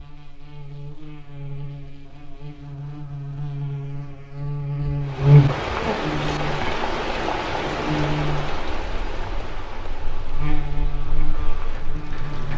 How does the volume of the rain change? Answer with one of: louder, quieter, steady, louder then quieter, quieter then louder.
quieter.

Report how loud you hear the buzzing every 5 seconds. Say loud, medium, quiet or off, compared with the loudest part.
medium, loud, quiet.